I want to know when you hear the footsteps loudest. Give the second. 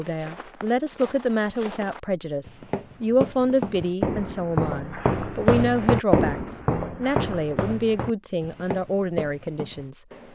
6 s.